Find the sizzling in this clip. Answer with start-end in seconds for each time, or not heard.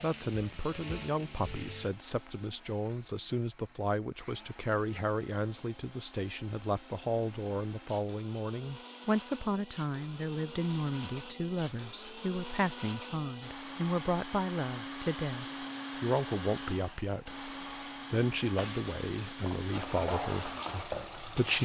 0.0-1.9, 18.6-21.6.